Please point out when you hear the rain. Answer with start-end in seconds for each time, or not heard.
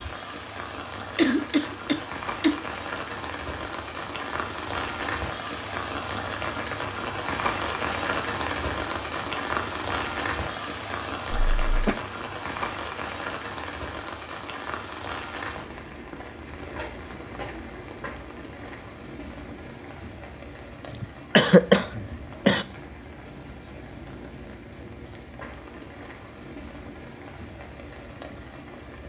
0.0-29.0.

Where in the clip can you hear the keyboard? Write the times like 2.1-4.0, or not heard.
not heard.